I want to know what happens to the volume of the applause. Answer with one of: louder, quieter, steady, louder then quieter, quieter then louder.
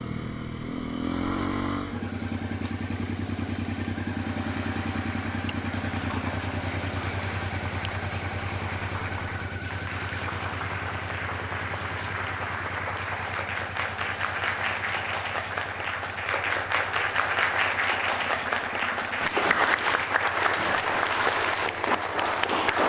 louder.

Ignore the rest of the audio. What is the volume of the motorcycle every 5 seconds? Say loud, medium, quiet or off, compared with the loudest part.
loud, loud, medium, quiet, quiet.